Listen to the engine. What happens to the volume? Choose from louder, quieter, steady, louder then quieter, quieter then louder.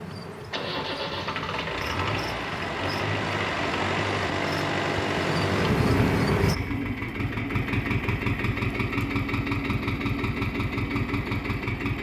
steady.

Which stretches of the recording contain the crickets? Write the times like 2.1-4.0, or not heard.
0.0-6.5.